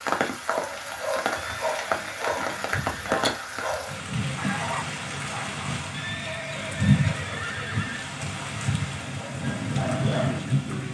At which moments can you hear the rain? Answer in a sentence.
The rain can be heard from 0.0 to 10.9 s.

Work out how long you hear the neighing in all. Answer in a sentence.
You can hear the neighing for 4 seconds altogether.